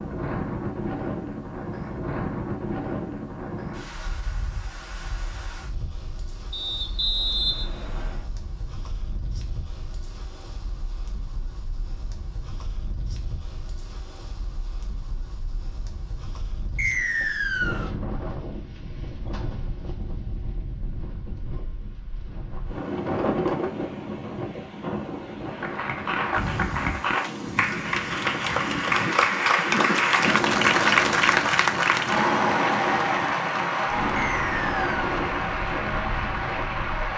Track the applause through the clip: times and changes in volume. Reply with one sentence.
The applause can be heard from 25.5 to 37.1 s, getting louder then quieter.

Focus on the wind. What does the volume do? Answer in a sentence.
The volume of the wind goes down, then up.